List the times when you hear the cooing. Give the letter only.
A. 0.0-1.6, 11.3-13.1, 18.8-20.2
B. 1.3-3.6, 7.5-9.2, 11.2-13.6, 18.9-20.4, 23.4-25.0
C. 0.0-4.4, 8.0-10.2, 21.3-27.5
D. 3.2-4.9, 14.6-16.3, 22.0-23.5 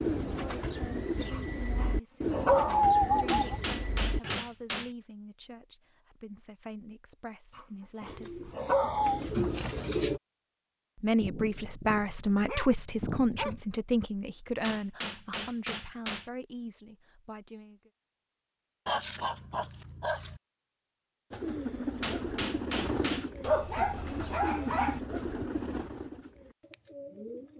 C.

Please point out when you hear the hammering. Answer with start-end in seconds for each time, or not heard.
3.2-4.9, 14.6-16.3, 22.0-23.5.